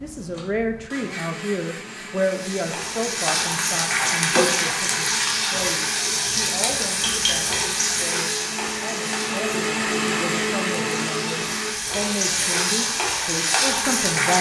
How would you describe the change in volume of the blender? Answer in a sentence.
The volume of the blender goes up, then down.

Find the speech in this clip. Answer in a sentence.
You can hear the speech from 0.0 to 14.3 s.